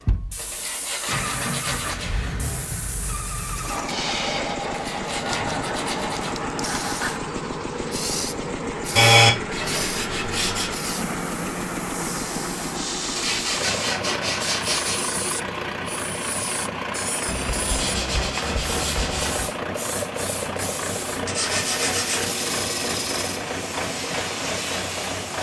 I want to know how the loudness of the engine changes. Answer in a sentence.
The loudness of the engine stays about the same.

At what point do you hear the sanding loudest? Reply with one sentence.
The loudest moment of the sanding is at 9 seconds.